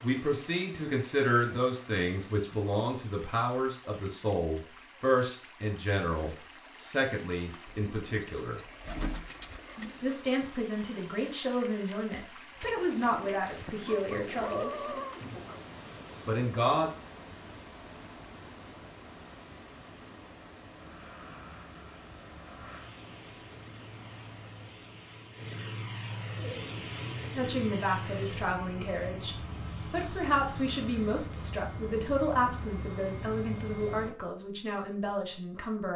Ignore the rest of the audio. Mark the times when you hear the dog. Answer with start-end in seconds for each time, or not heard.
13.8-15.6.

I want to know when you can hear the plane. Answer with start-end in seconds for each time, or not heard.
20.8-34.1.